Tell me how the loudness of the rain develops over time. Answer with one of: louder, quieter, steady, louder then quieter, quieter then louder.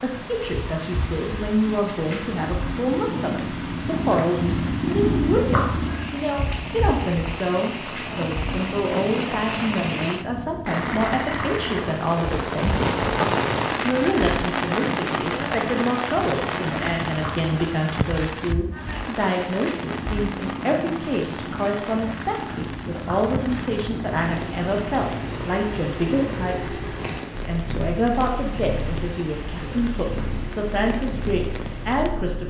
louder then quieter.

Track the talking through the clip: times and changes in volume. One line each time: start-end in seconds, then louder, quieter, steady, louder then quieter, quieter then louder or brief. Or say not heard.
0.0-32.4 steady.